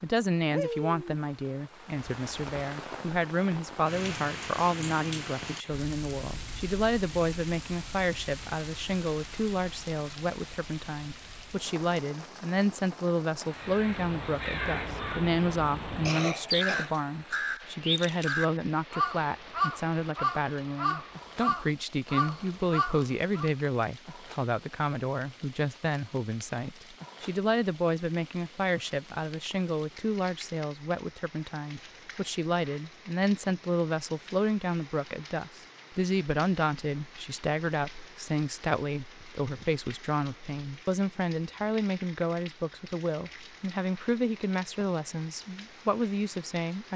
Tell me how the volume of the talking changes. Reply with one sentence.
The loudness of the talking stays about the same.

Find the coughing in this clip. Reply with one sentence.
The coughing can be heard from 16.1 to 16.9 s.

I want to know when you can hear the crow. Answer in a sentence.
The crow can be heard from 13.6 to 23.5 s.